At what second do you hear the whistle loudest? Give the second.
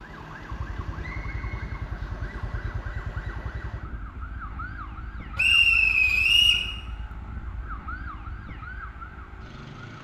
6 s.